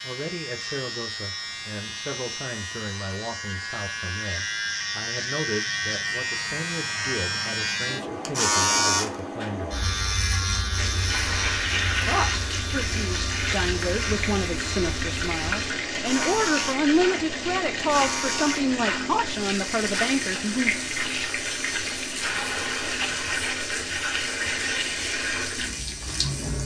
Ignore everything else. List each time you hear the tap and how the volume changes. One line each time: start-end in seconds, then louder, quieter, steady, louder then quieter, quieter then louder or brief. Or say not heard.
10.8-26.5 steady.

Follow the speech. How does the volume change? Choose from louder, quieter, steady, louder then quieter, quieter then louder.
louder.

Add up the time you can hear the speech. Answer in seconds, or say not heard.
19 s.